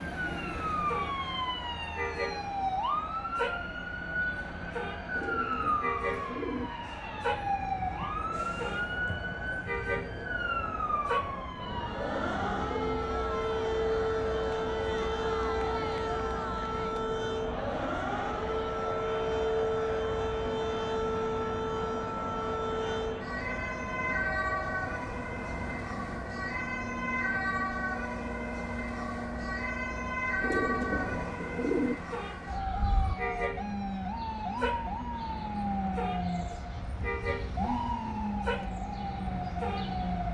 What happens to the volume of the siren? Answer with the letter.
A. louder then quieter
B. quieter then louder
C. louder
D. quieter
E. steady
E.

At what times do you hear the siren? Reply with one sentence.
The siren can be heard from 0.0 to 40.2 s.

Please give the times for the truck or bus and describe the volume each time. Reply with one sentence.
The truck or bus can be heard from 0.0 to 40.2 s, at a steady volume.